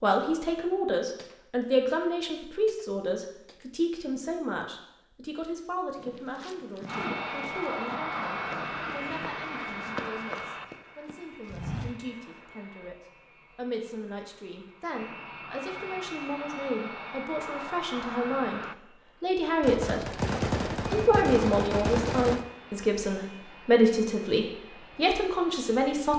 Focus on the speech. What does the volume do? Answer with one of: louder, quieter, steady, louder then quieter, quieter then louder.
quieter then louder.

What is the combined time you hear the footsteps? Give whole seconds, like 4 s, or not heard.
6 s.